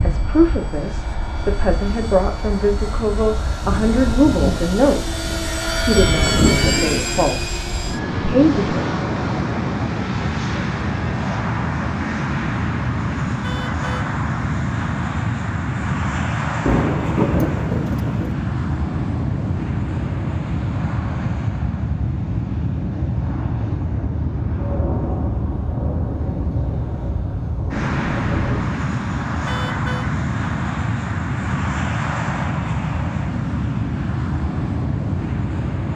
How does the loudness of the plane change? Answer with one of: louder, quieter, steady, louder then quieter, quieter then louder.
steady.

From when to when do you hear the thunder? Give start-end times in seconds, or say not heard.
3.7-7.4, 16.6-18.4, 24.6-28.7.